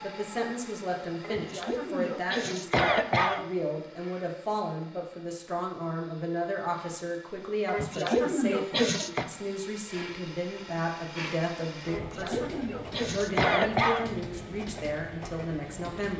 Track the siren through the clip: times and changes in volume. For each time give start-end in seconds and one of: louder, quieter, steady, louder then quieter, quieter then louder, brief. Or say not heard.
not heard.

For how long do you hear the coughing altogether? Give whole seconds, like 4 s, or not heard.
6 s.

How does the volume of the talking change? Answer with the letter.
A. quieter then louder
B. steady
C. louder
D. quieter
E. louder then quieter
B.